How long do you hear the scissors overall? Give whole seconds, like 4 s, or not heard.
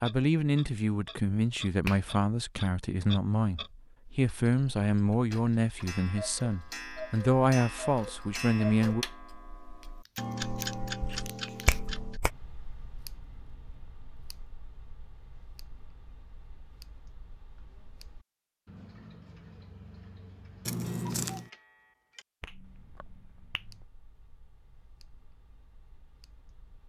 3 s.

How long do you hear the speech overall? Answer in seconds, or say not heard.
9 s.